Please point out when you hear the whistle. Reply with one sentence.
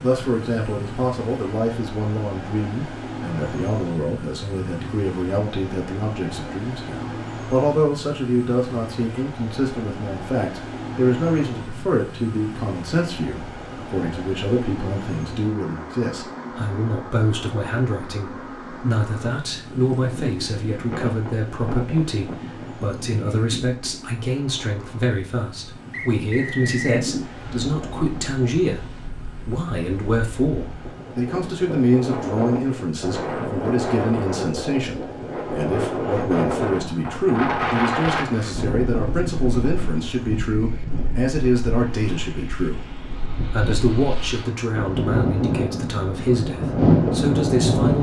You can hear the whistle from 25.9 to 27.0 s.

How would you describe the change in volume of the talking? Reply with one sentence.
The loudness of the talking stays about the same.